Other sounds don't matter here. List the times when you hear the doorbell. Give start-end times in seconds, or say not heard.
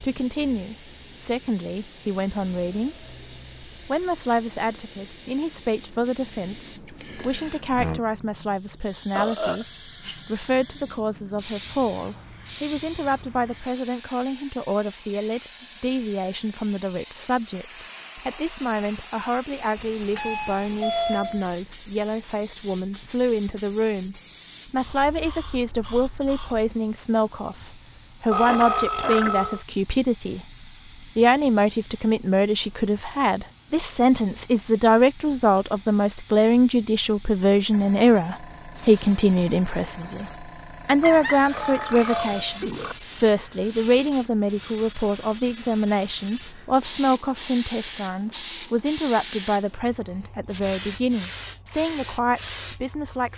19.8-21.4, 41.0-42.6.